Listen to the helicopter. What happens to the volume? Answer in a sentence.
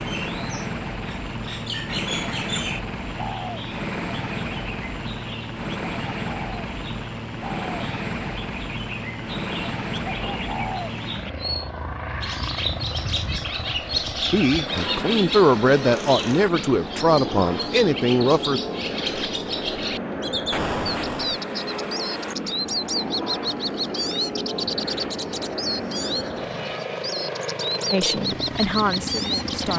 The volume of the helicopter stays about the same.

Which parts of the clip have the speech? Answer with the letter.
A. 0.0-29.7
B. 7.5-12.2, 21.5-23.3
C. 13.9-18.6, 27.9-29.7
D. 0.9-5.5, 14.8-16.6
C.